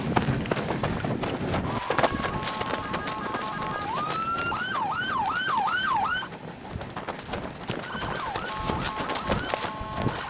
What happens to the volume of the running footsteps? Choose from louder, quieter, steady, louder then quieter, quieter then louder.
quieter then louder.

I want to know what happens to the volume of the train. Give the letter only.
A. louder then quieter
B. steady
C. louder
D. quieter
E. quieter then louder
D.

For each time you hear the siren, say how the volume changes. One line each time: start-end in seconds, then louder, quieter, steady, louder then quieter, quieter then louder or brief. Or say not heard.
1.6-6.3 louder
7.8-10.2 brief.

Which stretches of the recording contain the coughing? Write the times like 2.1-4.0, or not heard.
not heard.